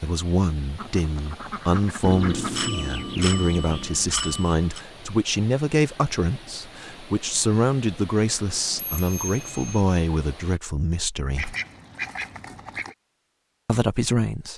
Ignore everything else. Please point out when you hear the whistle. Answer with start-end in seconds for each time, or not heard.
not heard.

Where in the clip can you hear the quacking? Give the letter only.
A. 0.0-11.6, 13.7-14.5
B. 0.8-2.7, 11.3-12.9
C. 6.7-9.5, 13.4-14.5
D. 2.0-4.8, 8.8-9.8
B.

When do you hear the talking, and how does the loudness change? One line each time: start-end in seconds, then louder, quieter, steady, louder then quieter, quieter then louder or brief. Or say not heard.
0.0-11.6 steady
13.7-14.5 brief.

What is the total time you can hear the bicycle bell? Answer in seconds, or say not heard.
4 s.